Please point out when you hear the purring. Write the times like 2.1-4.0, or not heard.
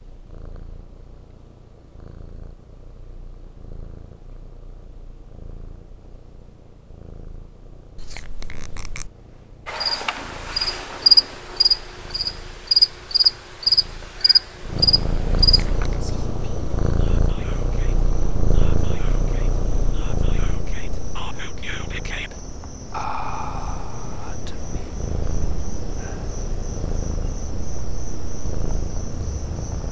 0.0-29.8.